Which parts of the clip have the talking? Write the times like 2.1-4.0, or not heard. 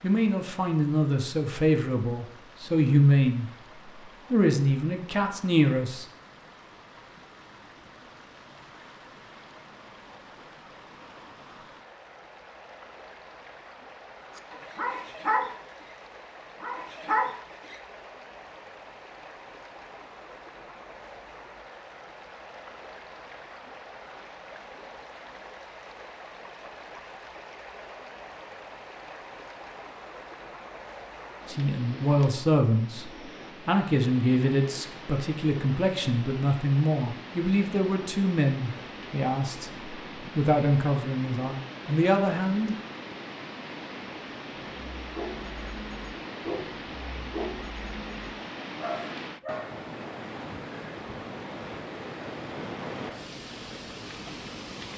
0.0-3.5, 4.3-6.0, 31.4-42.8.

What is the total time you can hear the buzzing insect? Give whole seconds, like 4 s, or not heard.
not heard.